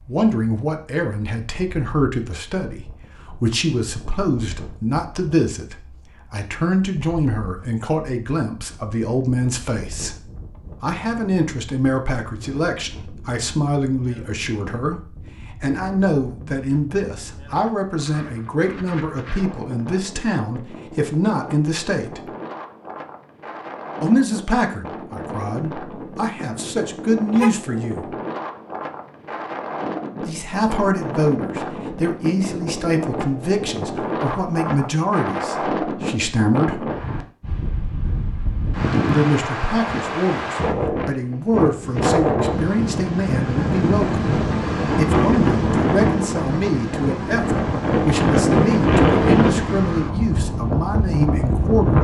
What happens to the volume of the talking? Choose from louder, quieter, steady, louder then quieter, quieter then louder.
steady.